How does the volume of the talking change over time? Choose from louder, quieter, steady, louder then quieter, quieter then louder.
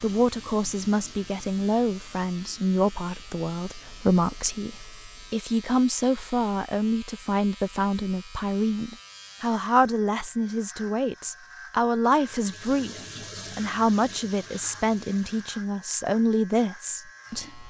steady.